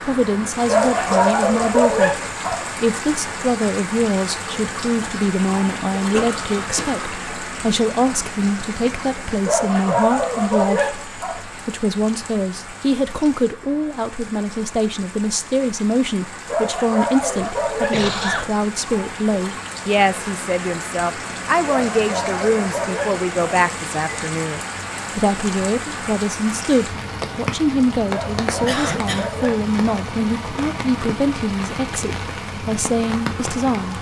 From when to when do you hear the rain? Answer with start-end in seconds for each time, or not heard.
0.0-33.9.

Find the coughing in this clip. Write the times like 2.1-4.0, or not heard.
6.1-7.2, 17.3-18.5, 28.6-29.3.